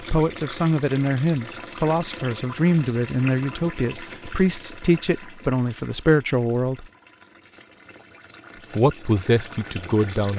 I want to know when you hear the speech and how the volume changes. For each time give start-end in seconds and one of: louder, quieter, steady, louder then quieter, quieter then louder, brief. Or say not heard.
0.0-6.8 steady
8.8-10.3 brief.